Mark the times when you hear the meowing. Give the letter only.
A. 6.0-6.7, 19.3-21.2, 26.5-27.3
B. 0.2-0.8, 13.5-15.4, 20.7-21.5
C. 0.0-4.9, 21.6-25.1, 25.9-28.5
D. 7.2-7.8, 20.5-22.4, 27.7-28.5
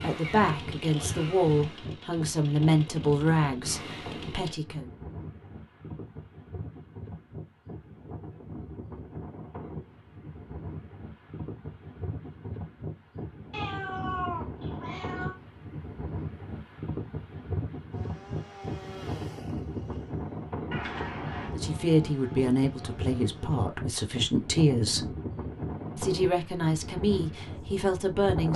B.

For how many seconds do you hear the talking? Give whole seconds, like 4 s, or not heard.
11 s.